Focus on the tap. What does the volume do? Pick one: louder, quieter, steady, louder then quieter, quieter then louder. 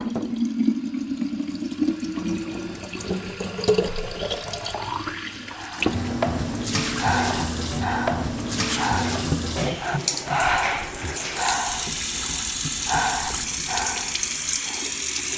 steady.